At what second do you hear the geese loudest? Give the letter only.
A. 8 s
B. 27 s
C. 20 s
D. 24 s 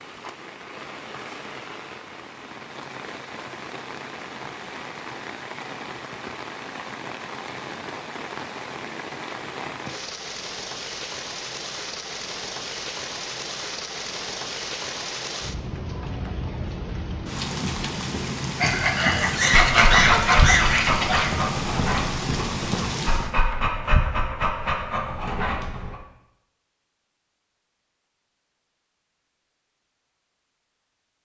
C.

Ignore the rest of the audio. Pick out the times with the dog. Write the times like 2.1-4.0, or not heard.
19.6-25.9.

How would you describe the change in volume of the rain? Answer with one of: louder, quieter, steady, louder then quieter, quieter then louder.
louder.